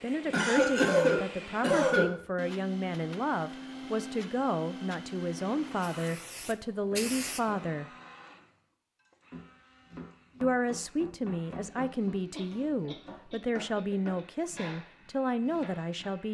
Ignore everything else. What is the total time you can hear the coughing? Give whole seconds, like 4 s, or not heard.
4 s.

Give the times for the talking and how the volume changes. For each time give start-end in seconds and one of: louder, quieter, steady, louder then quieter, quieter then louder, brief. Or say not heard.
0.0-7.8 steady
10.4-16.3 steady.